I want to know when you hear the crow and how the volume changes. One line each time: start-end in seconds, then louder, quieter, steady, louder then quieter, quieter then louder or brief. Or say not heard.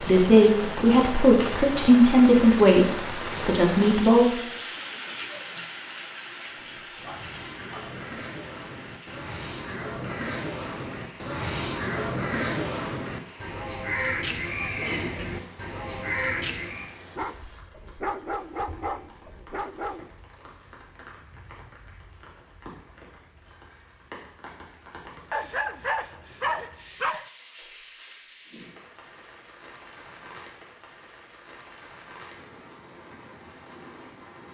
6.4-17.0 louder.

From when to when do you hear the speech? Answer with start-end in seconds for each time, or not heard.
0.0-4.3.